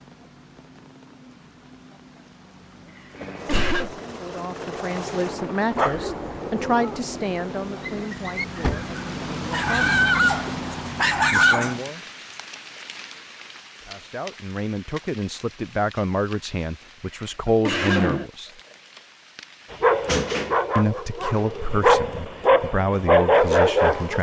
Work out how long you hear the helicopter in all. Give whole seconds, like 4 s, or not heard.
5 s.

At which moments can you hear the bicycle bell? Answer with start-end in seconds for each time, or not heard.
not heard.